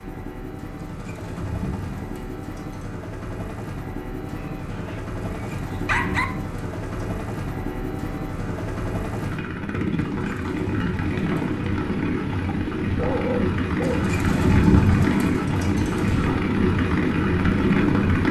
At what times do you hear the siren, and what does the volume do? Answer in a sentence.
The siren can't be heard in this clip.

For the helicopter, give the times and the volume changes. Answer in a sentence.
The helicopter can be heard from 0.0 to 18.2 s, getting louder.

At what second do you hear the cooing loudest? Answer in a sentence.
The volume of the cooing peaks at 15 seconds.